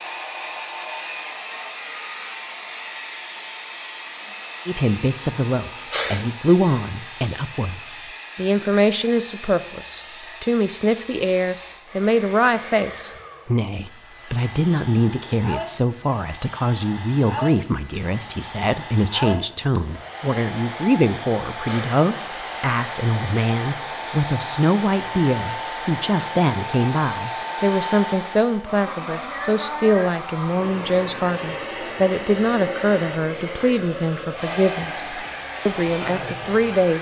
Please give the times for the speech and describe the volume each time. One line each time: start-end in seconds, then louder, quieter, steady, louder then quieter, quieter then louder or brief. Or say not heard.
4.7-36.9 steady.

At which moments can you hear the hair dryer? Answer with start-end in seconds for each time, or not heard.
0.0-36.9.